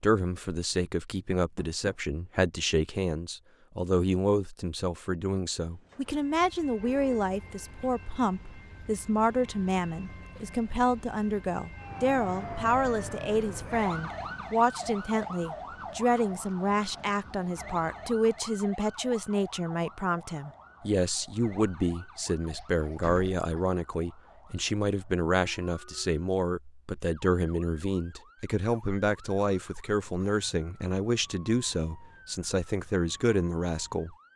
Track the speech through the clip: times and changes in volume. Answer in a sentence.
The speech can be heard from 0.0 to 34.3 s, at a steady volume.